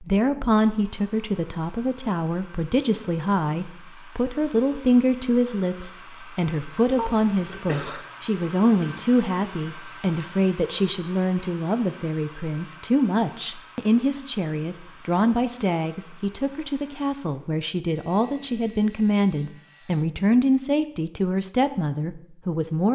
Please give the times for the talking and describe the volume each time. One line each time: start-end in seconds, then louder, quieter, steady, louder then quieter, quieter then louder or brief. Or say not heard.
0.0-22.8 steady.